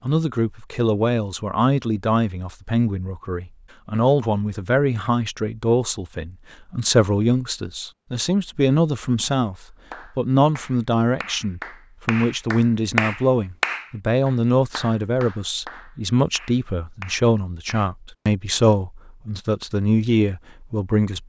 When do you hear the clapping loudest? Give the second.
13 s.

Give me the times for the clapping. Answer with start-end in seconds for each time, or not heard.
9.9-17.9.